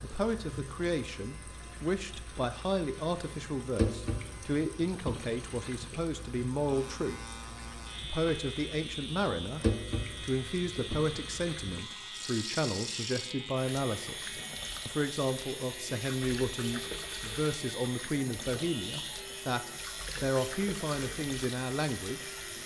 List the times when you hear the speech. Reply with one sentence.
The speech can be heard from 0.0 to 7.2 s, from 8.0 to 9.6 s and from 10.2 to 22.3 s.